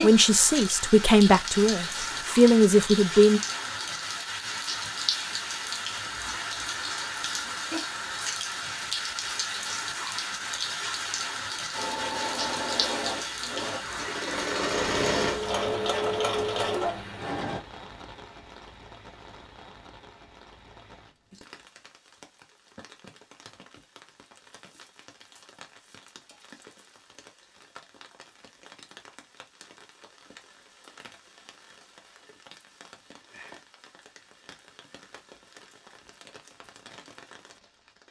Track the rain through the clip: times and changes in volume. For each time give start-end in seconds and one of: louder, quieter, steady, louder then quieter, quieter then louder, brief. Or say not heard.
0.0-38.0 quieter.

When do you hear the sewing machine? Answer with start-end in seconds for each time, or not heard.
11.7-17.6.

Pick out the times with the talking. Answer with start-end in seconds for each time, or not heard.
0.0-3.4.